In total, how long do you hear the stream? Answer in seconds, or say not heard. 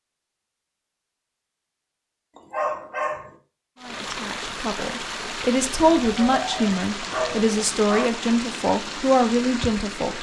6 s.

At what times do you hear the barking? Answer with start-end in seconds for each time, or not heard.
2.4-3.4, 5.8-8.1.